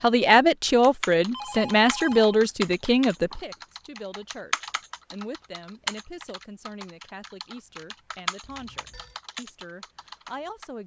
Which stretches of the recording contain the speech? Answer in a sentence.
The speech can be heard from 0.0 to 10.8 s.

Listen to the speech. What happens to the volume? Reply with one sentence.
The volume of the speech goes down.